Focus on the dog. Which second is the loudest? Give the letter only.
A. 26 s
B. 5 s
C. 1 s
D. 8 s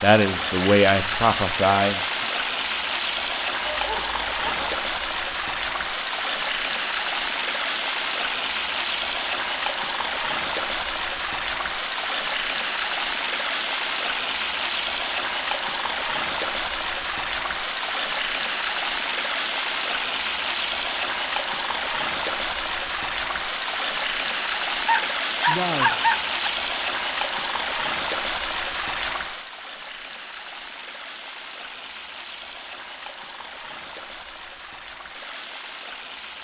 A.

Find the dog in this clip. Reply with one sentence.
The dog can be heard from 3.6 to 4.7 s and from 24.9 to 26.5 s.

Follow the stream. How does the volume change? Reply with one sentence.
The volume of the stream goes down.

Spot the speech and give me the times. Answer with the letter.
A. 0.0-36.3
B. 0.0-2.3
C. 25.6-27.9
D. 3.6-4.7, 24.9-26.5
B.